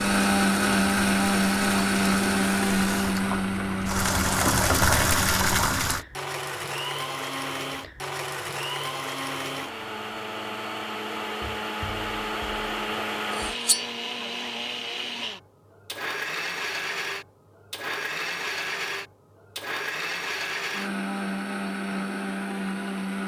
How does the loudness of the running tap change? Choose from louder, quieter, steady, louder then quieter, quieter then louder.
louder.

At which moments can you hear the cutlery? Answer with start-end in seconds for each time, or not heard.
13.3-13.8.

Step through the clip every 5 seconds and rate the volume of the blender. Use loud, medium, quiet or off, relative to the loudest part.
loud, medium, medium, medium, medium.